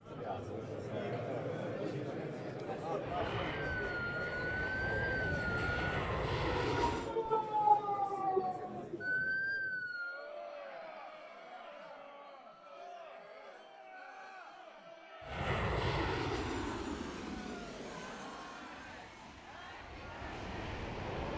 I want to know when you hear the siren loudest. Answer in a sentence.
The loudest moment of the siren is at 8 seconds.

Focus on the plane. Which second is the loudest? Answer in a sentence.
The loudest moment of the plane is at 21 seconds.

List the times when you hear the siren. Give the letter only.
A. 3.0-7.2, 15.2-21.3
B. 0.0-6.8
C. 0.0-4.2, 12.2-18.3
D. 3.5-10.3
D.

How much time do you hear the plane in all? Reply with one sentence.
You can hear the plane for 10 seconds altogether.